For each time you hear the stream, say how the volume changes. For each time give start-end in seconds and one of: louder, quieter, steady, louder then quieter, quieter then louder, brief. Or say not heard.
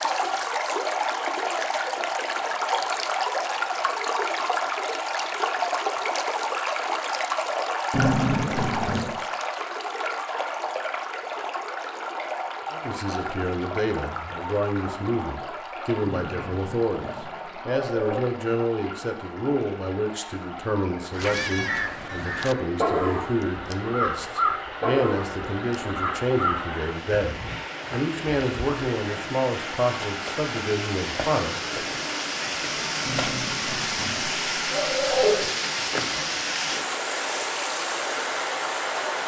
0.0-39.2 quieter then louder.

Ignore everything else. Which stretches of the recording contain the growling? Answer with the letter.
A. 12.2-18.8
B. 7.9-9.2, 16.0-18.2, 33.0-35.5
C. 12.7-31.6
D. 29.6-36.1
B.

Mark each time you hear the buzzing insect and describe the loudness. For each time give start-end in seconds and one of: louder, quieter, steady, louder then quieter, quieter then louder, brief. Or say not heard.
not heard.